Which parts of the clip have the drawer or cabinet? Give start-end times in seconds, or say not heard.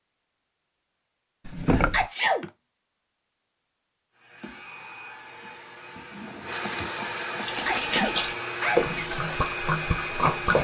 1.4-2.1, 6.0-6.9.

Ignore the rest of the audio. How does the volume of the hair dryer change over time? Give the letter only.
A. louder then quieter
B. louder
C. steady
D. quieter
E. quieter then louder
B.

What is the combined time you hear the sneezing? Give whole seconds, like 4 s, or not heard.
2 s.